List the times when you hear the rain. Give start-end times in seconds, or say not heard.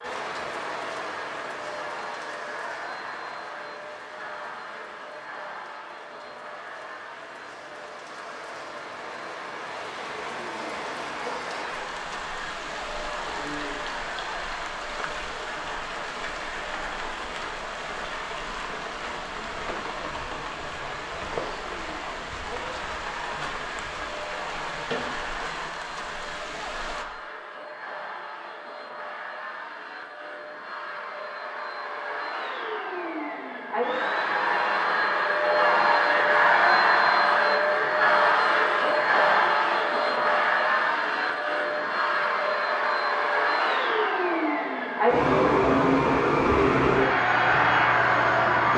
0.0-27.1.